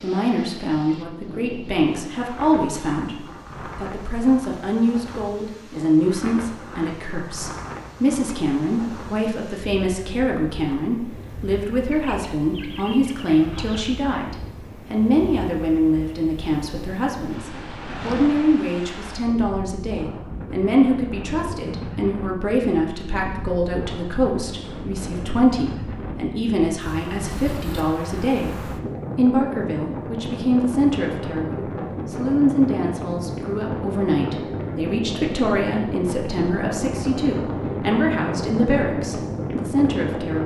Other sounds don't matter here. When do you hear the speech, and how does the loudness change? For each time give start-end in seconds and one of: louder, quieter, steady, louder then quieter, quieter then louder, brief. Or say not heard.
0.0-40.4 steady.